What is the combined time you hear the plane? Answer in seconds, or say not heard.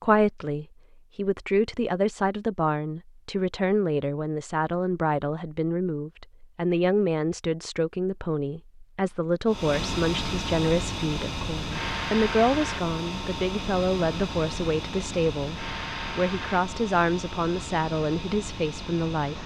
10 s.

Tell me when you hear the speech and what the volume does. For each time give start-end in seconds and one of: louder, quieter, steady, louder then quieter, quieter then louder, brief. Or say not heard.
0.0-19.4 steady.